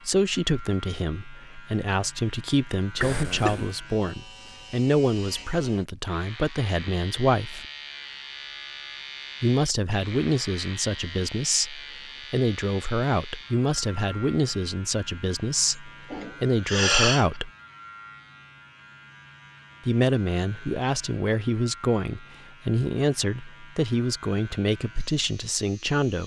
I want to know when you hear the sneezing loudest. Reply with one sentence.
The volume of the sneezing peaks at 17 seconds.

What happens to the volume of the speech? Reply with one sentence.
The volume of the speech stays about the same.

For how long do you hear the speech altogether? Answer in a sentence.
You can hear the speech for 22 seconds altogether.